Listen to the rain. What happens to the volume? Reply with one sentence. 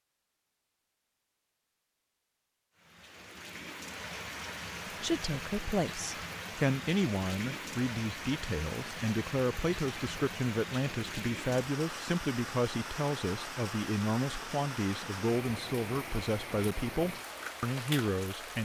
The volume of the rain stays about the same.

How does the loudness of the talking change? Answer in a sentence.
The loudness of the talking stays about the same.